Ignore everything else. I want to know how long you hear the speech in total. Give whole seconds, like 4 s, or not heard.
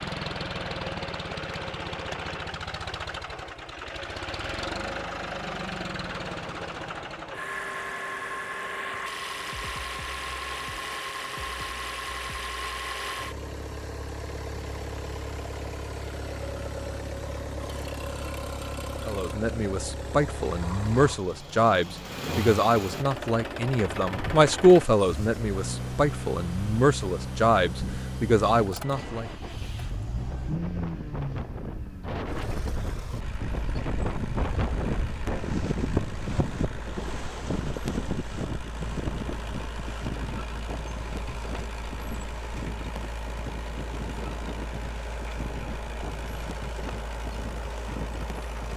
10 s.